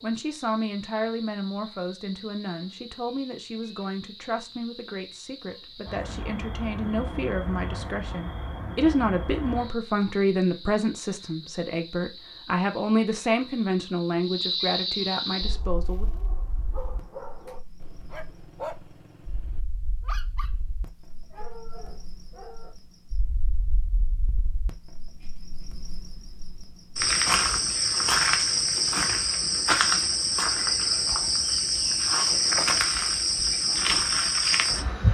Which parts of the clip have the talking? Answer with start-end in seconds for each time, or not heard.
0.0-16.1.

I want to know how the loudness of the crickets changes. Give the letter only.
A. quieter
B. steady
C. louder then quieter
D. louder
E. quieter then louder
D.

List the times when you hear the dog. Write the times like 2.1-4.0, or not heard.
15.3-22.8.